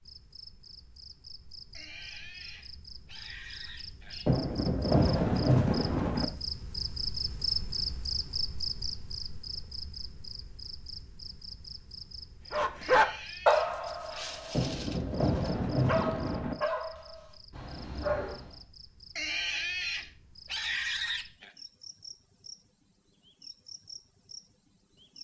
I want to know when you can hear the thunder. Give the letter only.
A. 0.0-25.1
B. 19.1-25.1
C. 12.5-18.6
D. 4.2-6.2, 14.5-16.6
D.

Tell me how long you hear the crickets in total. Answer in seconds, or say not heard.
25 s.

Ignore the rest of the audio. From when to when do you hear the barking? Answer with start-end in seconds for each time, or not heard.
12.5-18.6.